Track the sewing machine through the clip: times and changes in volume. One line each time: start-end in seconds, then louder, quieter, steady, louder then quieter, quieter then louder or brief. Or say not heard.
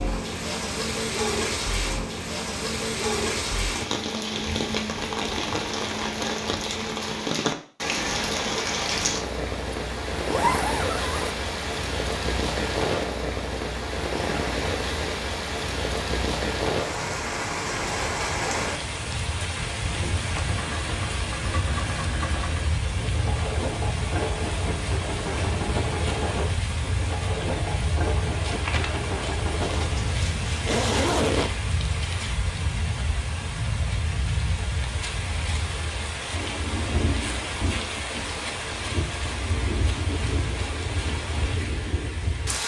20.4-30.2 steady.